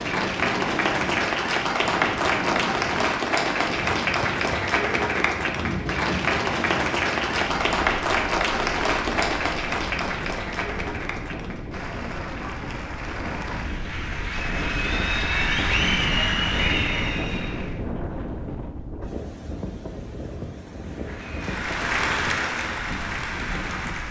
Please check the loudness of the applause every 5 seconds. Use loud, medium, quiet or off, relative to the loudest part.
loud, loud, medium, loud, medium.